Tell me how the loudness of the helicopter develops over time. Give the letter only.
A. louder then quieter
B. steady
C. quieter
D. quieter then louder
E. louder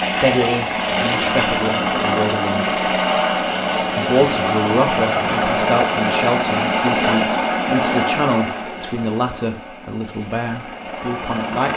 C.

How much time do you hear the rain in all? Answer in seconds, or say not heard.
not heard.